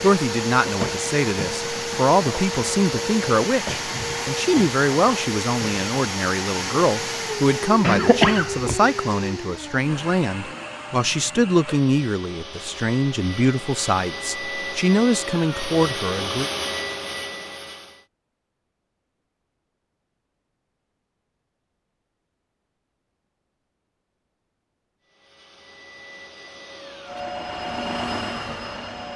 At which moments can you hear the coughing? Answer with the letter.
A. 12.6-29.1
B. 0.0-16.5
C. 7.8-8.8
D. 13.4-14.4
C.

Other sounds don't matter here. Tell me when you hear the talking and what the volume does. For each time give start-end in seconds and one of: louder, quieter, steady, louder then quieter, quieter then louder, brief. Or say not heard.
0.0-16.5 steady.